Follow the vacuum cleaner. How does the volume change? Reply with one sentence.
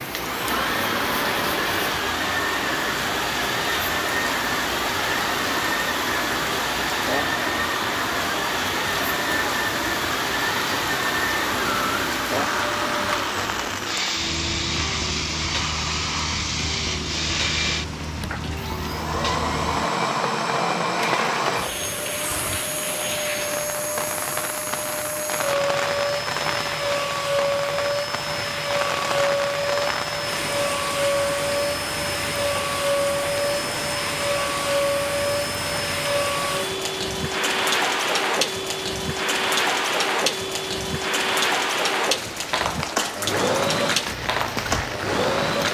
The volume of the vacuum cleaner stays about the same.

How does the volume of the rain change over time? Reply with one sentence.
The loudness of the rain stays about the same.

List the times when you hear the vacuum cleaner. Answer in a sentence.
The vacuum cleaner can be heard from 0.0 to 45.6 s.